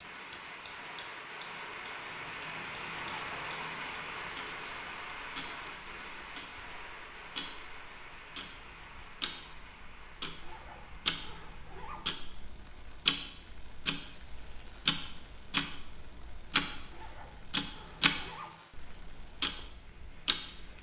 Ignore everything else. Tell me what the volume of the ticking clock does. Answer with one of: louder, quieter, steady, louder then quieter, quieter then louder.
louder.